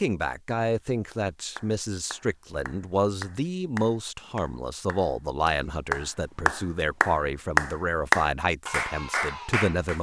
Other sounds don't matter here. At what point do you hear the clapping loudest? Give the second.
8 s.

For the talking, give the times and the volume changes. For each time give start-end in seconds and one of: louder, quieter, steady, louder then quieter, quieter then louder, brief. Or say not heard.
0.0-9.9 steady.